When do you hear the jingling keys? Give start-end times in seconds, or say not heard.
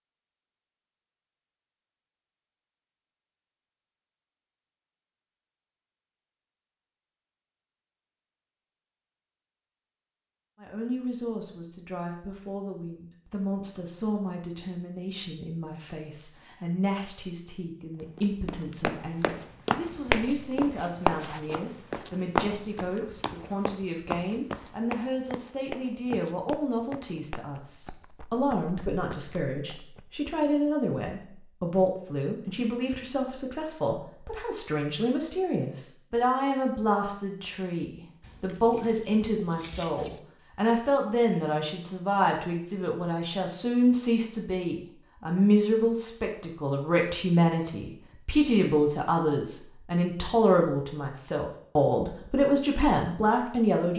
38.2-40.2.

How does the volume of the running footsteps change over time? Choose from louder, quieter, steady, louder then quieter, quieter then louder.
quieter.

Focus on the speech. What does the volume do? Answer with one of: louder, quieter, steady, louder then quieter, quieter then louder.
louder.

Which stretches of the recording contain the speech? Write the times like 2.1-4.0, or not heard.
10.6-53.9.